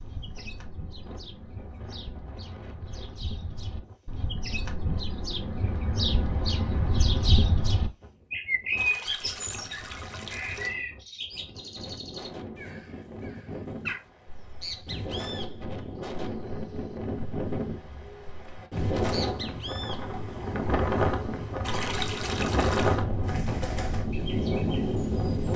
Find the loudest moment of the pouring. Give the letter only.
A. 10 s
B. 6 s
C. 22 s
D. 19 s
C.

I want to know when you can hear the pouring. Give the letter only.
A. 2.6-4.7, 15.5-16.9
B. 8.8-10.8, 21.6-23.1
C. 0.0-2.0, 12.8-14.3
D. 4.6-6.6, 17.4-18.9
B.